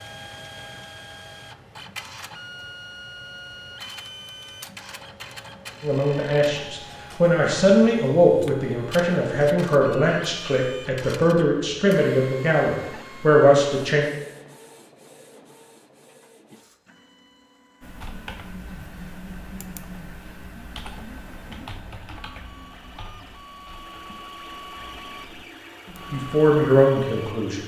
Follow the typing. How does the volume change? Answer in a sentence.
The volume of the typing goes down.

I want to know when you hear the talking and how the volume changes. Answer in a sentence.
The talking can be heard from 5.8 to 14.1 s, at a steady volume; and briefly from 26.1 to 27.6 s.